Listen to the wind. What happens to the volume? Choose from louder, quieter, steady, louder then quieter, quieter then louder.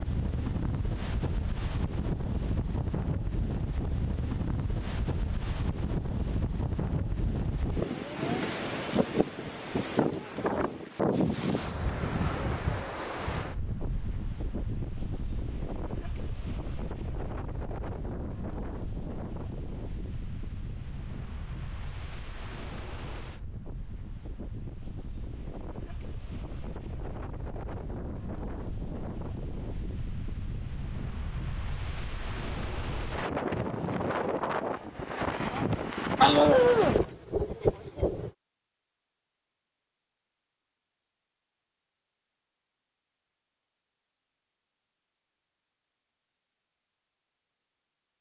quieter then louder.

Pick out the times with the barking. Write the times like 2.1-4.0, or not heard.
36.2-37.0.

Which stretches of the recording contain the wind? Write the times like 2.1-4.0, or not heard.
0.0-38.3.